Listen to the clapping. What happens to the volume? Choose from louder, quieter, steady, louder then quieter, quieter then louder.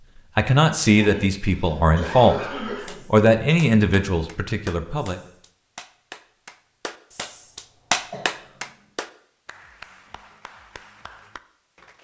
louder then quieter.